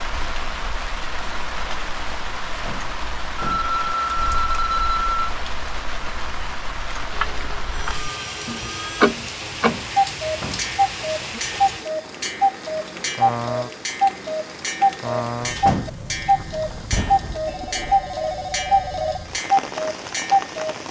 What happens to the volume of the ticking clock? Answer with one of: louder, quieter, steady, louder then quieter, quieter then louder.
louder.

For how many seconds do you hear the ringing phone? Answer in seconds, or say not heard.
6 s.